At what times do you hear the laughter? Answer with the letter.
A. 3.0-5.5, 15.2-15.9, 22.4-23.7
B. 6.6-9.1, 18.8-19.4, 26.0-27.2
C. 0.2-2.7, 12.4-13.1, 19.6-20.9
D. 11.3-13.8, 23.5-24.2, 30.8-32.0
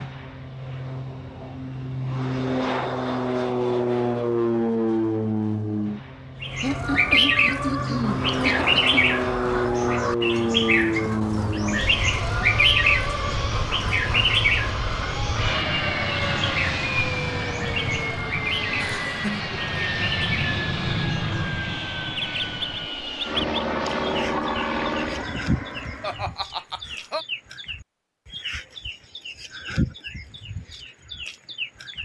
B.